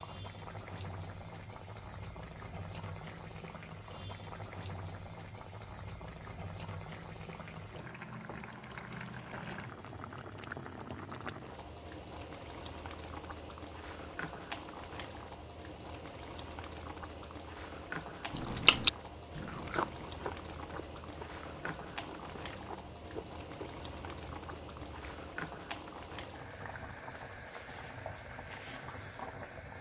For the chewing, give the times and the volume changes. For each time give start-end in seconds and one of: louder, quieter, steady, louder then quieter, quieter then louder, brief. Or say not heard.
18.3-25.1 quieter.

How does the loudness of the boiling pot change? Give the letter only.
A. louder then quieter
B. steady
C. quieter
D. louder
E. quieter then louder
B.